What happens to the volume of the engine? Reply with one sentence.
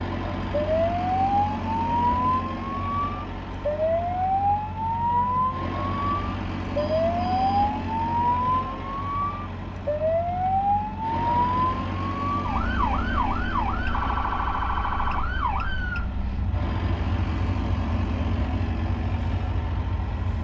The volume of the engine stays about the same.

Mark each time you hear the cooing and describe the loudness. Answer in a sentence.
You can't hear the cooing here.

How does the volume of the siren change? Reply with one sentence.
The loudness of the siren goes down.